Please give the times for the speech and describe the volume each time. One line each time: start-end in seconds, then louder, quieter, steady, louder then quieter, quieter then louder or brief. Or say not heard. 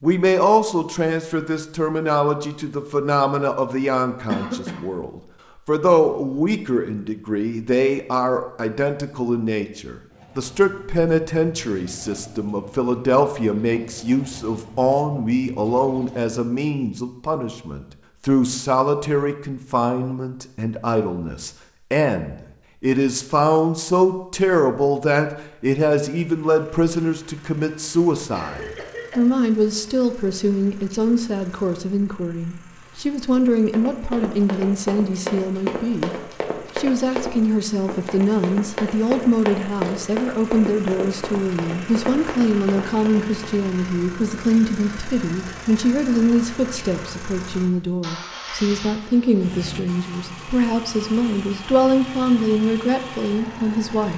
0.0-54.1 steady.